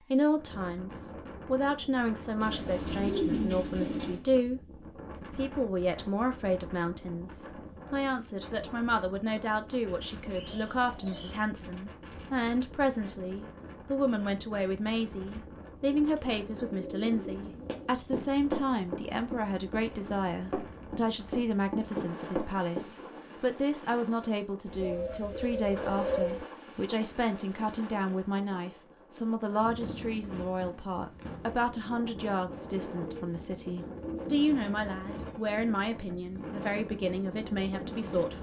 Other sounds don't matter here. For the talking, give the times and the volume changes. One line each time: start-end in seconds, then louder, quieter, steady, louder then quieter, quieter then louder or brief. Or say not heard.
0.1-38.3 steady.